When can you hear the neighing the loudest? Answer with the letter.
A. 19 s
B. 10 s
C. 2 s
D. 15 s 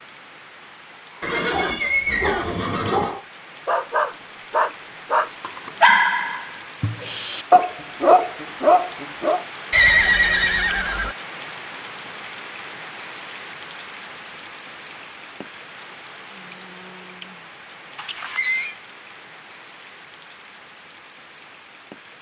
B.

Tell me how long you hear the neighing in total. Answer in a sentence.
The neighing can be heard for 4 seconds in total.